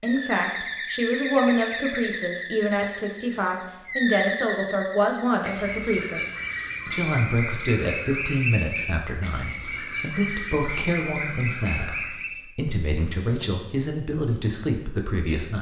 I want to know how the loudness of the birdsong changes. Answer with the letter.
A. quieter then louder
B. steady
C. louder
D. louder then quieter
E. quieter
B.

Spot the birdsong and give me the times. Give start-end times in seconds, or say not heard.
0.0-12.4.